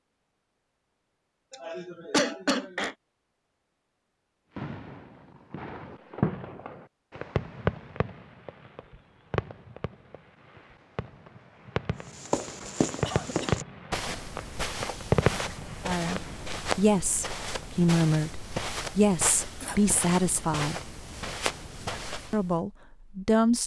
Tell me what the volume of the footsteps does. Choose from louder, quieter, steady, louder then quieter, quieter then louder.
steady.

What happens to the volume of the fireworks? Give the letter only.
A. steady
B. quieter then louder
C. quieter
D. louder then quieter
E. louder
B.